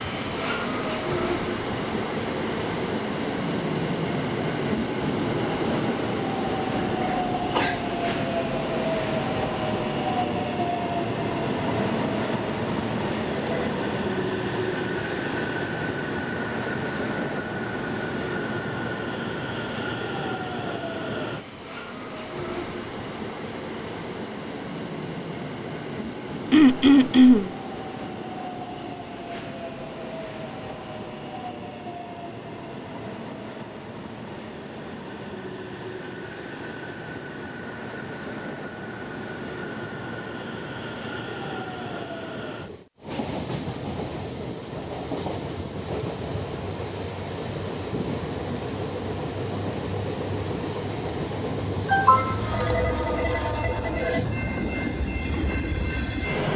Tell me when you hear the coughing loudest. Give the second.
27 s.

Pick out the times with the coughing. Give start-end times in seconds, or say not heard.
6.8-7.8, 26.5-27.5, 51.9-52.5.